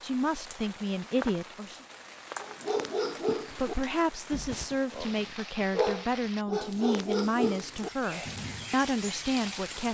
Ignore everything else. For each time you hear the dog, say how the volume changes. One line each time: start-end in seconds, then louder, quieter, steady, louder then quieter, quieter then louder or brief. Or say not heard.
2.4-8.8 quieter then louder.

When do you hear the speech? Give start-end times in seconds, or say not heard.
0.0-1.8, 3.5-9.9.